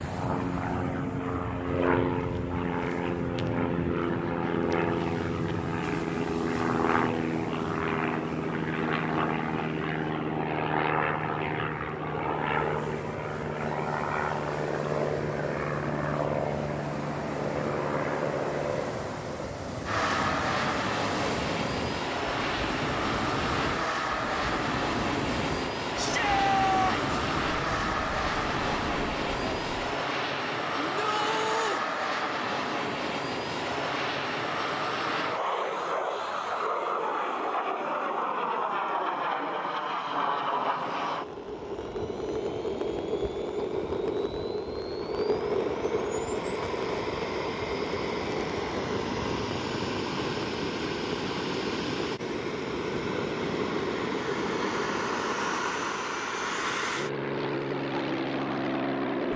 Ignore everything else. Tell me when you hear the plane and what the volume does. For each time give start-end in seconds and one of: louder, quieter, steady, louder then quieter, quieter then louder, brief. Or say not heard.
0.0-59.3 steady.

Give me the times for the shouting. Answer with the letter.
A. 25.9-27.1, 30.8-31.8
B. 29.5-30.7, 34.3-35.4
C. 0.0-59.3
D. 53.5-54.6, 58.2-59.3
A.